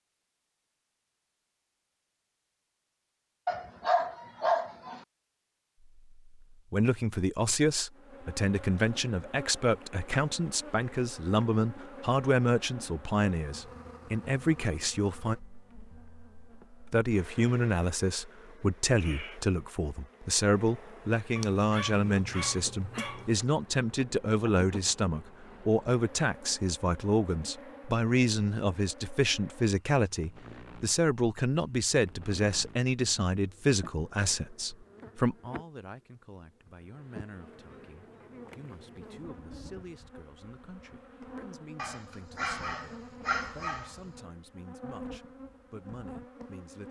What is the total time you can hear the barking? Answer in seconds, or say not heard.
6 s.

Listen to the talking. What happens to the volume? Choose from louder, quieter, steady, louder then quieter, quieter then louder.
quieter.